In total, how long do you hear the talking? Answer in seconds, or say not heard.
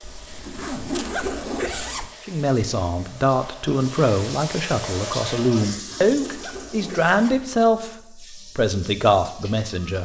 8 s.